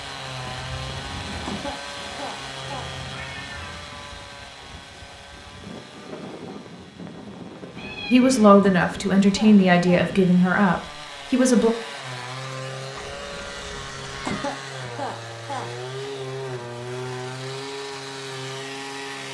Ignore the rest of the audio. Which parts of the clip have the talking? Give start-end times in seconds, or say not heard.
8.1-11.7.